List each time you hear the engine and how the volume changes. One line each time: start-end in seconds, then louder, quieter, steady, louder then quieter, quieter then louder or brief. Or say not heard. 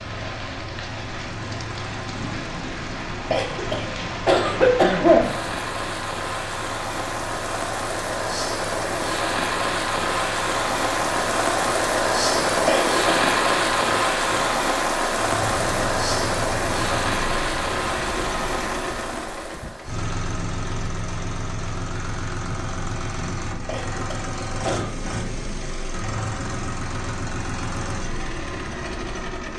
0.0-29.5 louder.